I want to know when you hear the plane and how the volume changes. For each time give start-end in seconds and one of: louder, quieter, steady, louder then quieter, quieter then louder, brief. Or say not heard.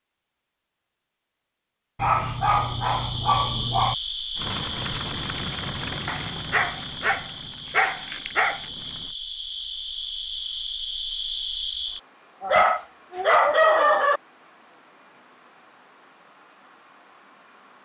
4.3-9.2 quieter.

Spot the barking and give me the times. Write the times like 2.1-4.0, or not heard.
1.9-4.0, 6.0-8.7, 12.4-14.2.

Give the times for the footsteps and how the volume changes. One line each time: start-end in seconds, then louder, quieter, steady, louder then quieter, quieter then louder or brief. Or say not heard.
not heard.